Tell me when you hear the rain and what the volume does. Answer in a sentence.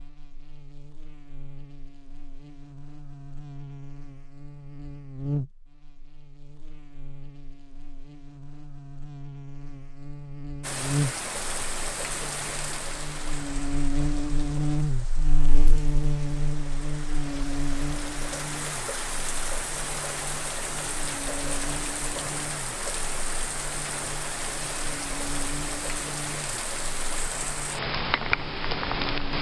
The rain can be heard from 10.6 to 29.3 s, getting quieter then louder.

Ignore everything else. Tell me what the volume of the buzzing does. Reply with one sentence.
The loudness of the buzzing goes up, then down.